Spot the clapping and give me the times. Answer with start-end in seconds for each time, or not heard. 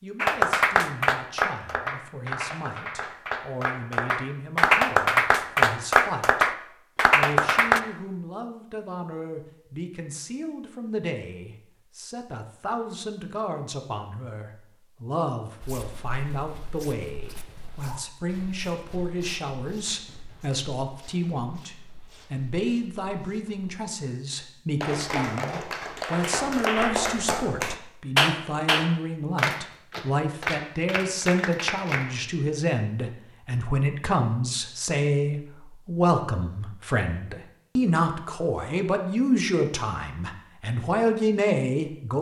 0.2-7.8, 24.8-32.1.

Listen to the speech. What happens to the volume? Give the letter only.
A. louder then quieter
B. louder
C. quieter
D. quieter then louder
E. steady
B.